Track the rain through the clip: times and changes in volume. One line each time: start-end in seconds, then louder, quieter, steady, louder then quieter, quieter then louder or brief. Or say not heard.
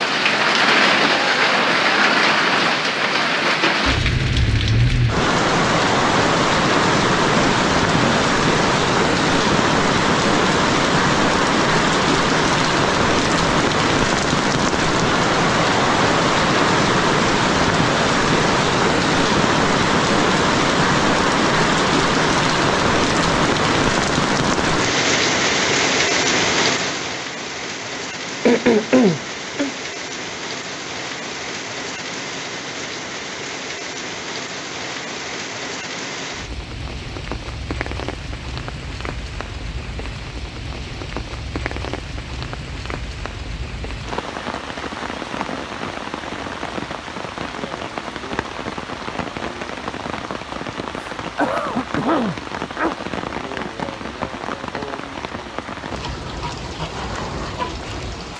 0.0-58.3 quieter.